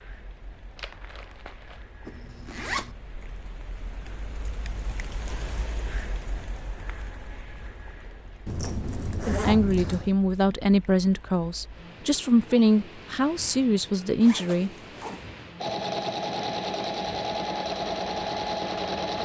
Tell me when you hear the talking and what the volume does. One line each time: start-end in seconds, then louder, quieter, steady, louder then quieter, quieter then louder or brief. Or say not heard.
9.2-15.2 steady.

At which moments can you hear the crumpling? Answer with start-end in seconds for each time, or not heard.
0.8-1.9.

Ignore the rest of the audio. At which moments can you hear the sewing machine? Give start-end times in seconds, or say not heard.
15.6-19.2.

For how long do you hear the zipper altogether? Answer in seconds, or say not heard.
4 s.